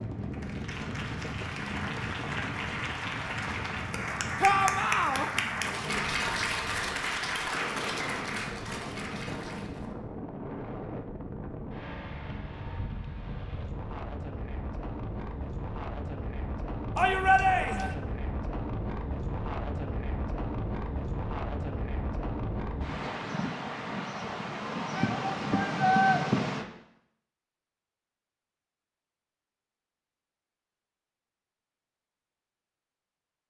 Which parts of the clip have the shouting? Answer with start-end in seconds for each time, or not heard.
4.4-5.3, 16.9-17.9, 24.9-26.2.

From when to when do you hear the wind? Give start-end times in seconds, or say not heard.
0.0-26.6.